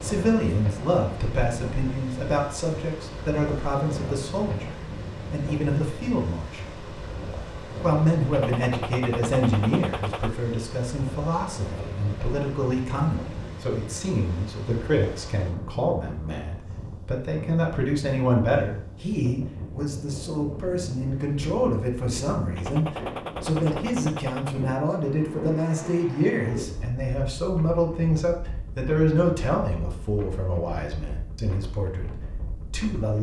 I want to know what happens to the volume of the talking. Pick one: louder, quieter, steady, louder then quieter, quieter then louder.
steady.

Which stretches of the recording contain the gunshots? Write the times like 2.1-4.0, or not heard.
8.3-10.3, 22.6-24.6.